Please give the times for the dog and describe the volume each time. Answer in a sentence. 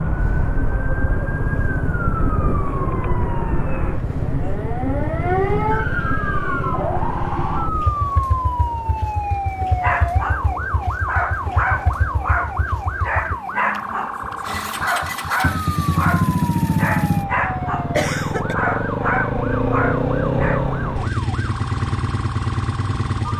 You can hear the dog from 9.8 to 20.6 s, at a steady volume.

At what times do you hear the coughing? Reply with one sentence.
The coughing can be heard from 17.9 to 18.6 s.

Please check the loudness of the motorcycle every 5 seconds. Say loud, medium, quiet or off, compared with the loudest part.
medium, medium, medium, loud, loud.